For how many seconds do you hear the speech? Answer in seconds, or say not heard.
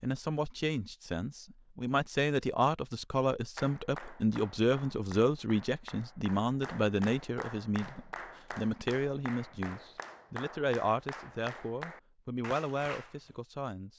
14 s.